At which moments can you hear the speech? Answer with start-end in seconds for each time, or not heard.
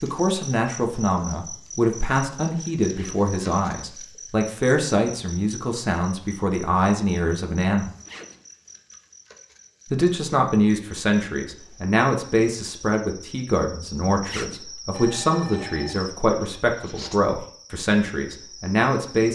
0.0-7.9, 9.9-19.2.